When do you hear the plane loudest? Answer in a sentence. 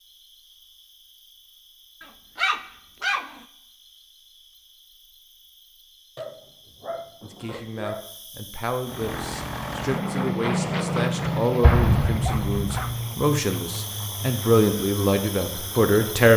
The volume of the plane peaks at 11 seconds.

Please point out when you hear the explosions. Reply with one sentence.
You can hear the explosions from 11.6 to 12.9 s.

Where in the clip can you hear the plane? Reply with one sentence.
The plane can be heard from 8.8 to 16.3 s.